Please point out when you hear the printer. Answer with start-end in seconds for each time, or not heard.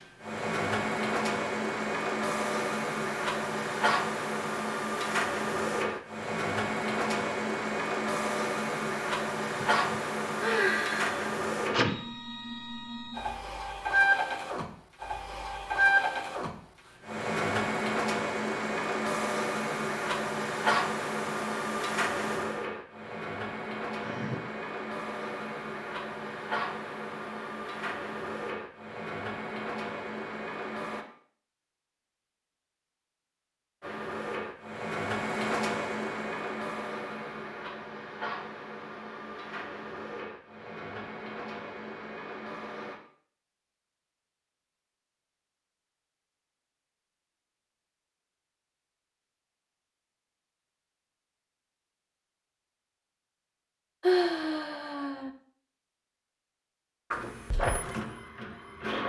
0.0-31.1, 33.8-43.0, 57.1-59.0.